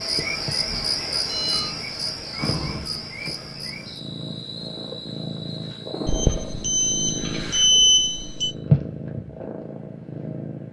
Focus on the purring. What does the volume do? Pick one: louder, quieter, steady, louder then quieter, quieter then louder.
louder.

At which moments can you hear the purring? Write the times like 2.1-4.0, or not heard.
0.0-10.6.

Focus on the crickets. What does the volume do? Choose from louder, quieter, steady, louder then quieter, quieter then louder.
quieter.